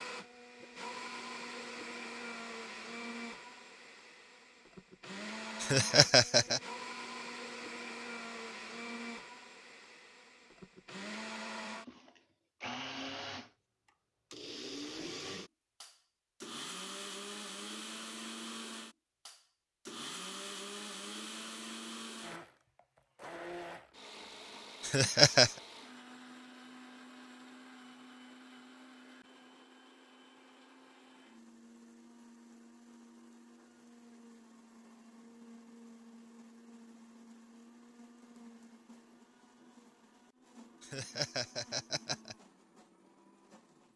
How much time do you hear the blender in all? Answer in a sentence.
The blender can be heard for 44 seconds in total.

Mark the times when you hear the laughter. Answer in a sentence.
You can hear the laughter from 5.6 to 6.6 s, from 24.8 to 25.6 s and from 40.8 to 42.4 s.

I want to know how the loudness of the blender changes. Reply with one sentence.
The volume of the blender goes down.